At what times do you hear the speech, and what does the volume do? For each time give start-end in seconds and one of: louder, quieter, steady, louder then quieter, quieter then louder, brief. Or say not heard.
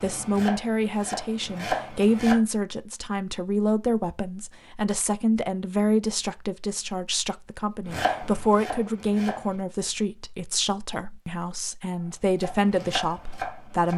0.0-13.9 steady.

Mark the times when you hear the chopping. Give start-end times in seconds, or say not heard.
0.0-2.4, 7.8-9.6, 11.9-13.9.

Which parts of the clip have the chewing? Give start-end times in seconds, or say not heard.
not heard.